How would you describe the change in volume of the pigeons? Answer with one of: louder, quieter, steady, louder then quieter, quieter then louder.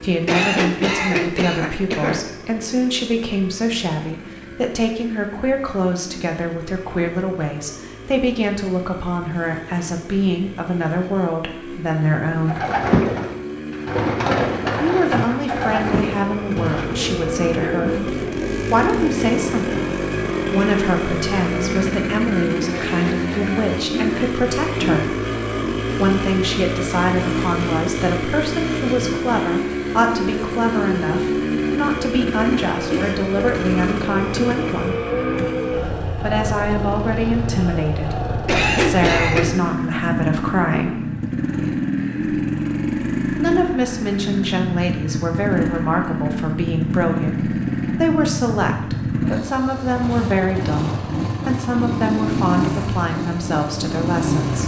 quieter.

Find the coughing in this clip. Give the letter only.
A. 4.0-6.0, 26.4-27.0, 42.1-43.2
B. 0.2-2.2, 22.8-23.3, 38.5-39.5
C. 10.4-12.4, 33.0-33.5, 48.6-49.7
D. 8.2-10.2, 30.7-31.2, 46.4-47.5
B.